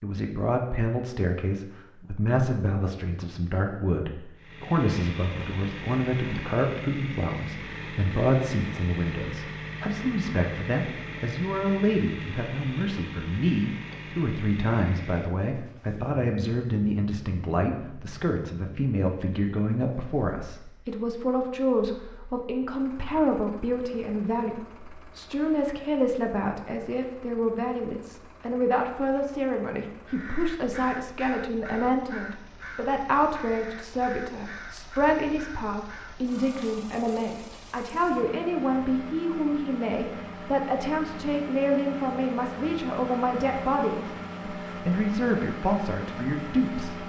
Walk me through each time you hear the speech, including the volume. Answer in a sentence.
You can hear the speech from 0.0 to 47.0 s, at a steady volume.